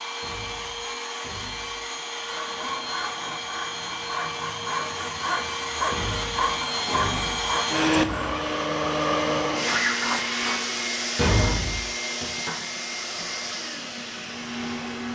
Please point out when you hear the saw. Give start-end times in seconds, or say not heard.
2.1-8.4.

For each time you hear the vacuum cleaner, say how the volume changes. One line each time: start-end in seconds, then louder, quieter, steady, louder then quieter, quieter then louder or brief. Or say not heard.
0.0-15.1 louder then quieter.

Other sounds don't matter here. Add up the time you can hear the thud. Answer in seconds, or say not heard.
5 s.